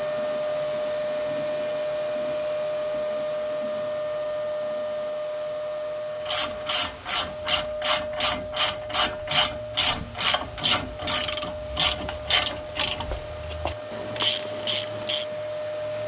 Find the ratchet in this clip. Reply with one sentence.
You can hear the ratchet from 6.2 to 15.2 s.